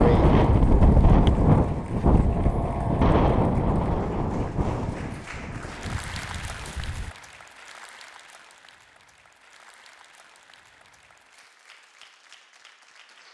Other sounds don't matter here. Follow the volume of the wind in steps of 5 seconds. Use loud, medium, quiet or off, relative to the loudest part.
loud, quiet, off.